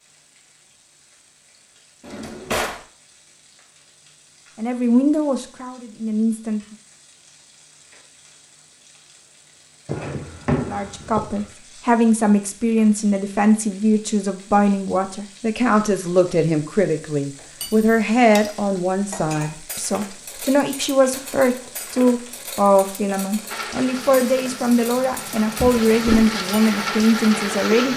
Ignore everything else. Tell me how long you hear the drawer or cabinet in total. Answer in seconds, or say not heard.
3 s.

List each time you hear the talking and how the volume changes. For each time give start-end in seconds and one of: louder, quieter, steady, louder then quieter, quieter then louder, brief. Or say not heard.
4.5-6.6 brief
10.7-27.9 steady.